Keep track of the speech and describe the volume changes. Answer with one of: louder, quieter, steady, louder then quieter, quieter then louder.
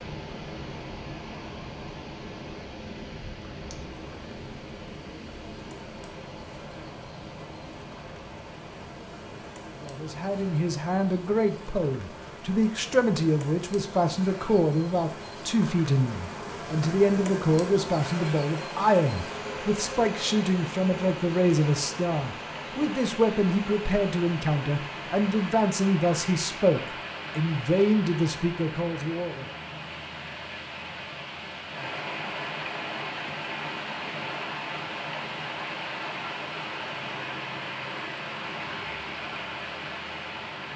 steady.